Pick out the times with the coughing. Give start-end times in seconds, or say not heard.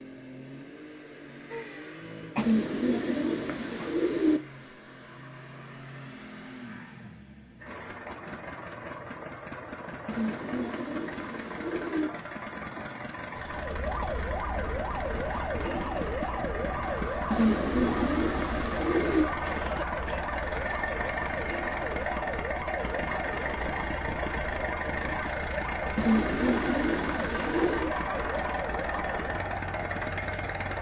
1.5-2.5, 19.4-20.8.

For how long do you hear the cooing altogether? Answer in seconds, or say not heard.
8 s.